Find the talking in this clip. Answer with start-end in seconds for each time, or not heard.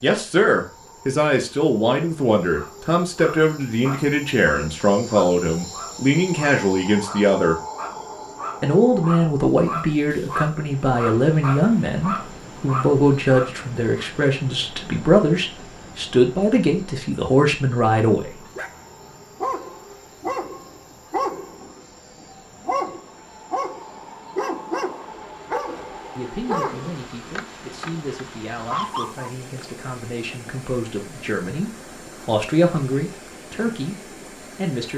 0.0-7.5, 8.6-18.4, 26.1-34.9.